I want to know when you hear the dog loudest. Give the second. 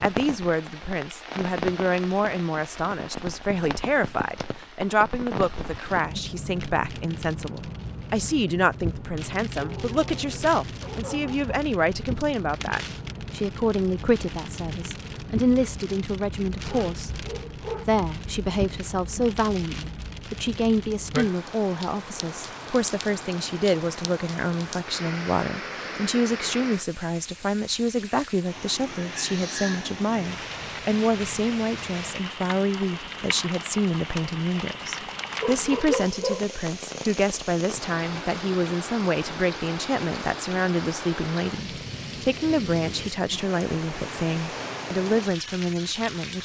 36 s.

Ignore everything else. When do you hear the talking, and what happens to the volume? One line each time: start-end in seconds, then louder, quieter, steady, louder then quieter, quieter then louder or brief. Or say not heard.
0.0-46.3 steady.